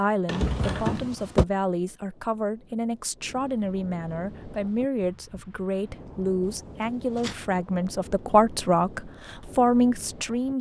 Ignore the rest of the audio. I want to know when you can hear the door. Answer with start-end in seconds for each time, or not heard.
0.2-1.4, 6.6-7.4.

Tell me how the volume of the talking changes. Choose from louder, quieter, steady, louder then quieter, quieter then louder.
louder.